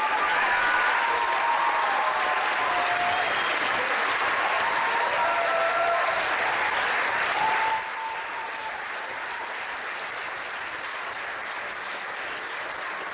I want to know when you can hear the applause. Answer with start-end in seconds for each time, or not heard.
0.0-13.0.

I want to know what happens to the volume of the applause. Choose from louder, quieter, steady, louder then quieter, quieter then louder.
quieter.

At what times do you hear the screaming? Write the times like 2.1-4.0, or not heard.
0.1-1.1.